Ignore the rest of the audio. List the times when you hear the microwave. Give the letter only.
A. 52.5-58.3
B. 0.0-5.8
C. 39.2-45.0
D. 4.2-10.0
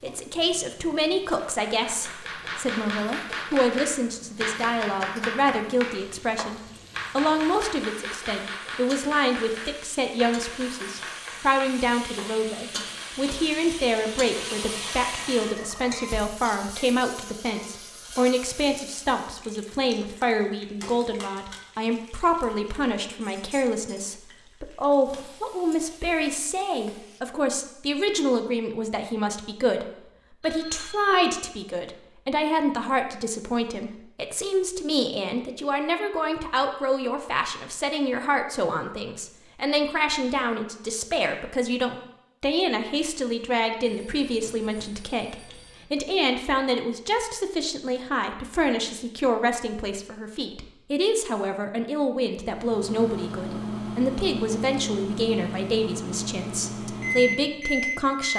A.